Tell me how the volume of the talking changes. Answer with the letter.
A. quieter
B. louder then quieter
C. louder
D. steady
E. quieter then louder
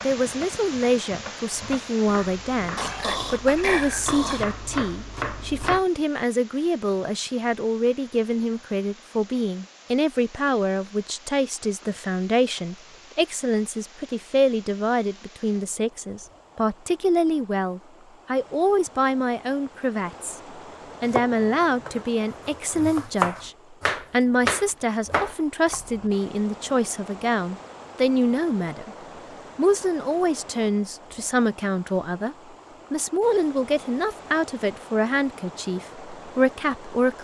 D.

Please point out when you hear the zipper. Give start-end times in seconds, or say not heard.
not heard.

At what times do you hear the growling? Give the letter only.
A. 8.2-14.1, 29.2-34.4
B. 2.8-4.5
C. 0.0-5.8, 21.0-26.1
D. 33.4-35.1
B.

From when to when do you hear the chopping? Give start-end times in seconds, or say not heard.
0.0-5.8, 21.0-26.1.